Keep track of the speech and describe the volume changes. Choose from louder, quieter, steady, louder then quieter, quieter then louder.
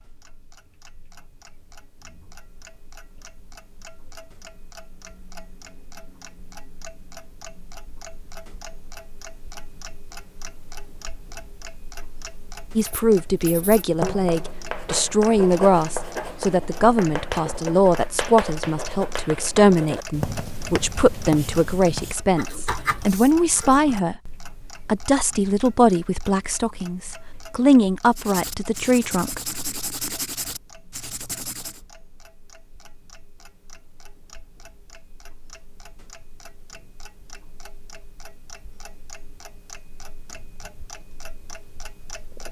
steady.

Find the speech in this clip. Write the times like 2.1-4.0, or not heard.
12.8-29.6.